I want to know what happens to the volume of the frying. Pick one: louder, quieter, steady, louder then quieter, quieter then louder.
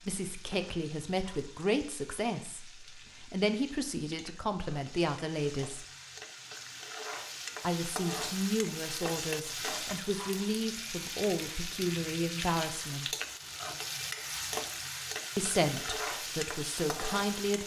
louder.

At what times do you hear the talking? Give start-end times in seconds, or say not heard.
0.1-5.8, 7.6-13.1, 15.3-17.6.